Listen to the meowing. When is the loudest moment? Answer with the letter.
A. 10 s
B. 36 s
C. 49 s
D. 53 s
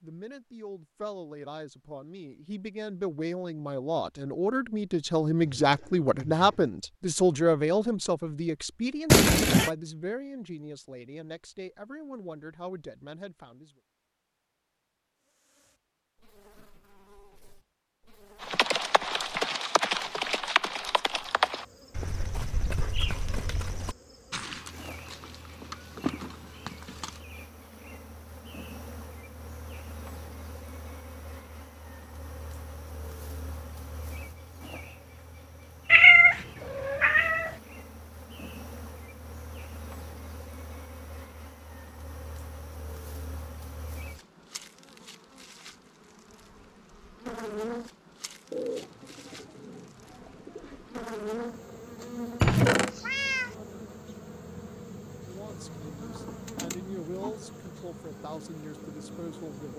B.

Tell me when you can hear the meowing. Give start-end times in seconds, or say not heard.
9.1-9.7, 35.9-37.5, 52.4-53.5.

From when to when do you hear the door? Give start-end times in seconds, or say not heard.
not heard.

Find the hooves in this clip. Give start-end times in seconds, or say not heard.
18.4-27.2.